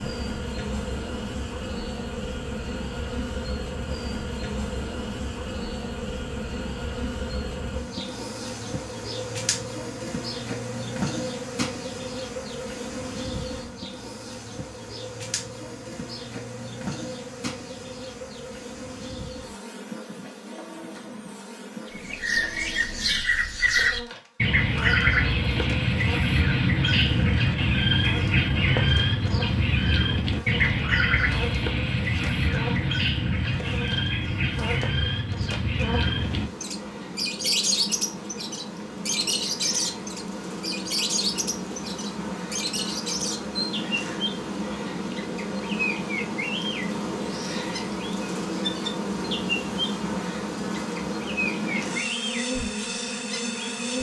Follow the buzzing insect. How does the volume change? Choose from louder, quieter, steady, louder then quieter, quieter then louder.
quieter then louder.